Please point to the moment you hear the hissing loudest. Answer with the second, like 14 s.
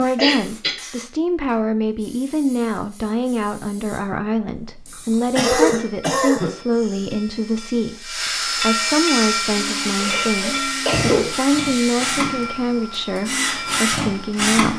9 s.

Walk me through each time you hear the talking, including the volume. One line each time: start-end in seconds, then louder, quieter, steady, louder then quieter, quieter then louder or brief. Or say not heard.
0.0-14.7 steady.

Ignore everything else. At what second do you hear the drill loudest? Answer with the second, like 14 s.
14 s.